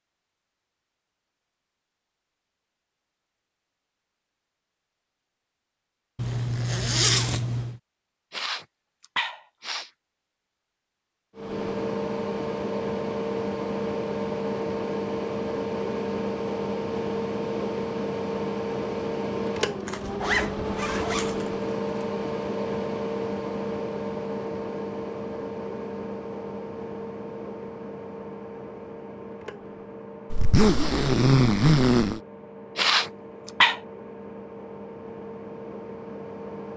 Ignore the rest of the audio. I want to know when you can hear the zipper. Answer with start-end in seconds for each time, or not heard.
6.2-7.8, 19.9-21.5, 30.3-32.2.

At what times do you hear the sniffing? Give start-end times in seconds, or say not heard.
8.3-9.9, 32.8-33.8.